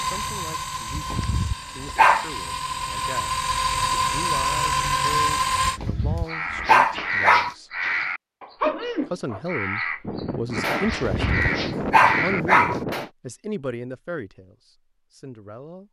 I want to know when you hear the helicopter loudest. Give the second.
5 s.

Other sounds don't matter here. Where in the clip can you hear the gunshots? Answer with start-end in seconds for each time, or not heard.
10.0-13.1.